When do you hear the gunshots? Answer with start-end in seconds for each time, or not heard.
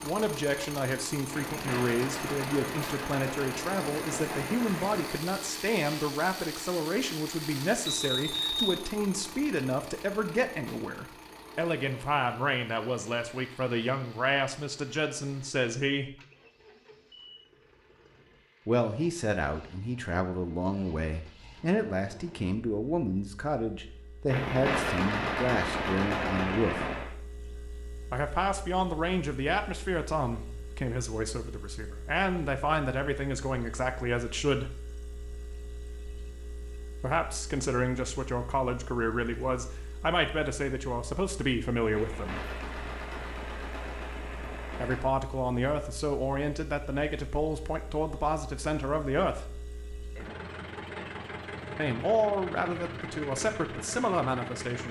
1.3-5.2, 24.2-27.1, 41.9-45.0.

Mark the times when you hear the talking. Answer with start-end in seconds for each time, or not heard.
0.0-16.1, 18.6-26.9, 28.1-34.8, 37.0-42.4, 44.8-49.6, 51.8-54.8.